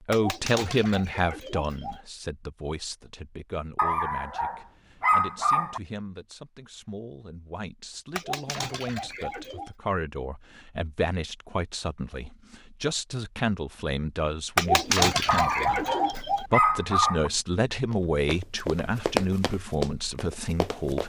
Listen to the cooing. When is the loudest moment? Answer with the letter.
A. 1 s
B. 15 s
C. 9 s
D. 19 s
B.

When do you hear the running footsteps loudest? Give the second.
19 s.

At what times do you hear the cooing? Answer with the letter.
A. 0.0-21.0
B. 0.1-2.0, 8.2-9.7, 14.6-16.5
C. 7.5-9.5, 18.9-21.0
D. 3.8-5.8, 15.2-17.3
B.